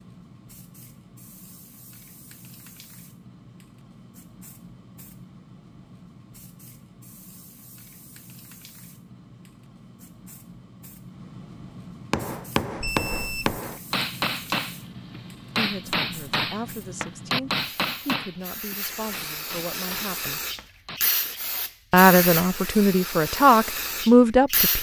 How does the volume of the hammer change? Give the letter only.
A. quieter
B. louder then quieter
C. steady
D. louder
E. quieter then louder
A.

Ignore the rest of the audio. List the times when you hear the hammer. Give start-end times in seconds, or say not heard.
12.1-21.0.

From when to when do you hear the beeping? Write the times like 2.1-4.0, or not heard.
12.8-13.6.